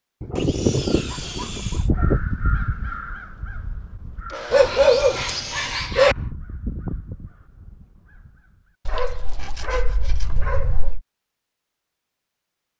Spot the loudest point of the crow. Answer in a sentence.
The volume of the crow peaks at 2 seconds.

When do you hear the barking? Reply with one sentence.
The barking can be heard from 0.2 to 2.2 s, from 4.5 to 6.2 s and from 8.8 to 11.0 s.